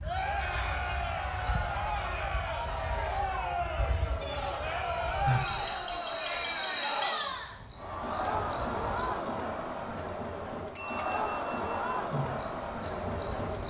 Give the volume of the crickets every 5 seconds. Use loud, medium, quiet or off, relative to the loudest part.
medium, loud, loud.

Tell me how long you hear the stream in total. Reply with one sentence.
You can't hear the stream here.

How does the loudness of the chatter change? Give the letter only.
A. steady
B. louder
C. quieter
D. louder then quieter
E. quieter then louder
A.